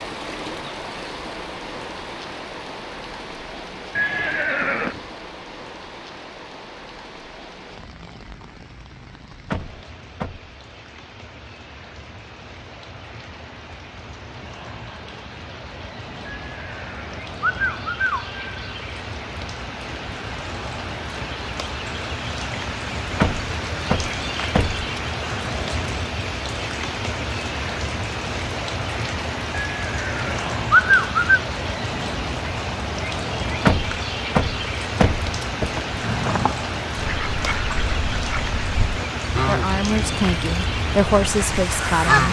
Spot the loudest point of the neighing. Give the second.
31 s.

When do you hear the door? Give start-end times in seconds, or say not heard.
9.5-10.5, 23.2-25.2, 33.6-35.8.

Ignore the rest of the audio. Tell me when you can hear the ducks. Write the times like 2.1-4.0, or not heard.
36.0-42.2.